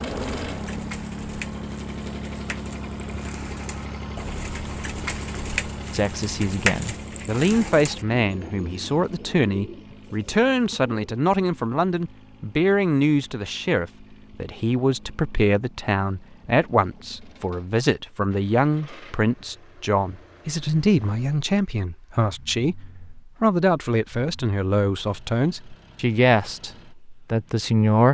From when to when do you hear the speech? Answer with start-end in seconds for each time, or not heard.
5.9-28.0.